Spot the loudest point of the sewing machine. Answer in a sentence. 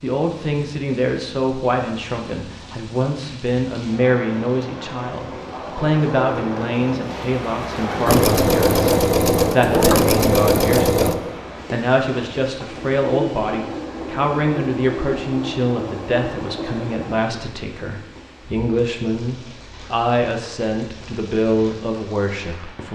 The volume of the sewing machine peaks at 10 seconds.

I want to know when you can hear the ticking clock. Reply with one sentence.
You can't hear the ticking clock here.